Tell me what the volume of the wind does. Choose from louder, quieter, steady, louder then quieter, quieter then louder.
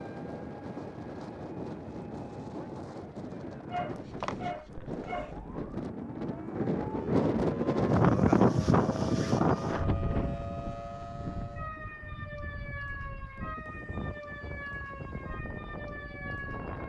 louder then quieter.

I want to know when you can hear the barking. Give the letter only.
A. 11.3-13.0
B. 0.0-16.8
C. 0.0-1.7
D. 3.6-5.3
D.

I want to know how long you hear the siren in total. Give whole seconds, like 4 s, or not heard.
17 s.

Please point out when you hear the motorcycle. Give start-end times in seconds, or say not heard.
not heard.